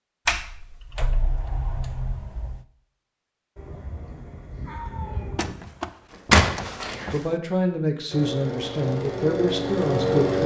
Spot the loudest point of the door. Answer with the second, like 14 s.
6 s.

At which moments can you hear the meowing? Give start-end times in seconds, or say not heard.
3.5-5.5.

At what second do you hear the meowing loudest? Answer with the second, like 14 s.
5 s.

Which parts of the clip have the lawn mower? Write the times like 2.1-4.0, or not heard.
8.1-10.4.